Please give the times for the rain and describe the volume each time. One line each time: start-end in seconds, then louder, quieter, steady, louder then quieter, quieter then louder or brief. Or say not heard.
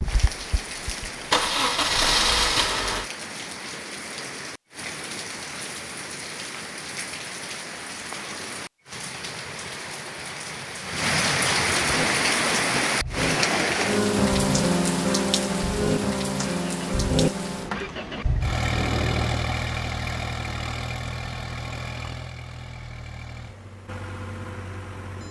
0.0-19.5 louder then quieter.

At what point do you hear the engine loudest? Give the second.
2 s.